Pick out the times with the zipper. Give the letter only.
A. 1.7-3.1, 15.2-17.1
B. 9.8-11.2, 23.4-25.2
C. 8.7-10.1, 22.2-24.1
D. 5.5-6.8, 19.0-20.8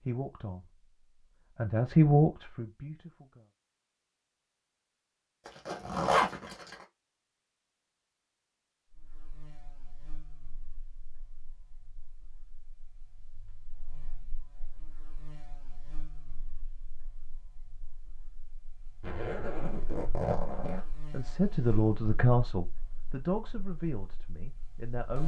D.